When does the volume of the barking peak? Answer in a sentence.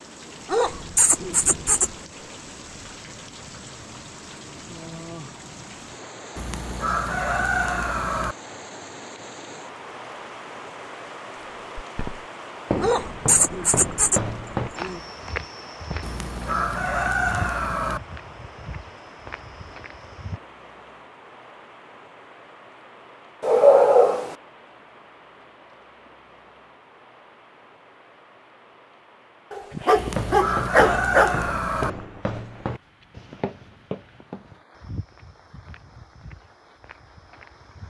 The loudest moment of the barking is at 24 seconds.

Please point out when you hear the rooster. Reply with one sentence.
The rooster can be heard from 6.3 to 8.3 s, from 16.0 to 18.0 s and from 29.9 to 31.9 s.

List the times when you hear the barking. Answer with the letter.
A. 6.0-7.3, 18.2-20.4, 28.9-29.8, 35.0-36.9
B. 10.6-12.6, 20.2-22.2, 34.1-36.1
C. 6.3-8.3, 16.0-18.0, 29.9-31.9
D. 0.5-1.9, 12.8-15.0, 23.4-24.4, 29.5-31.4
D.